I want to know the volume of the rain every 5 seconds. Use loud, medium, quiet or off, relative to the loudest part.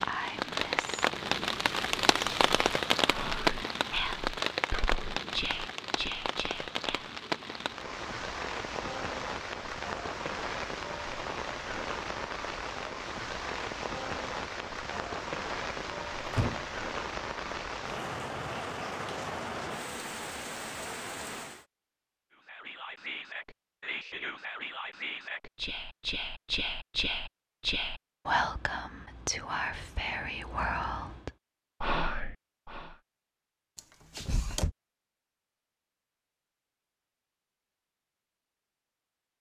loud, medium, medium, medium, medium, off, off, off.